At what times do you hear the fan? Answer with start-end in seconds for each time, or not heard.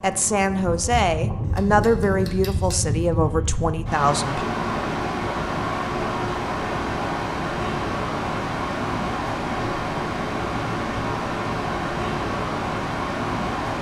0.0-13.7.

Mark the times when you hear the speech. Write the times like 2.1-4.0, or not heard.
0.0-4.5.